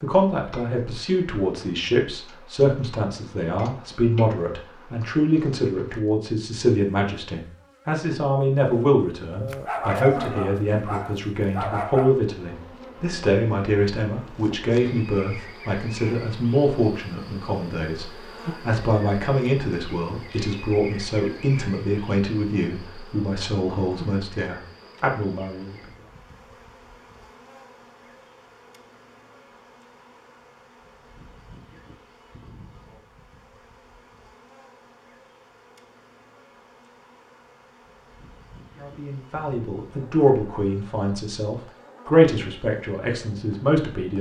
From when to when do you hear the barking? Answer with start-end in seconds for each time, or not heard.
9.4-12.2.